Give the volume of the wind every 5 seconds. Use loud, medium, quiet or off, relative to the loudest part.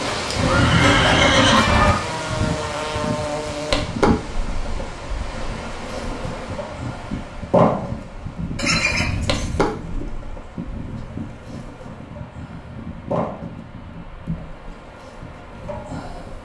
loud, medium, medium, quiet.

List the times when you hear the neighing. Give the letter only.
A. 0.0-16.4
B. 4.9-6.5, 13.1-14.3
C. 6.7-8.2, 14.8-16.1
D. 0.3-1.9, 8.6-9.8
D.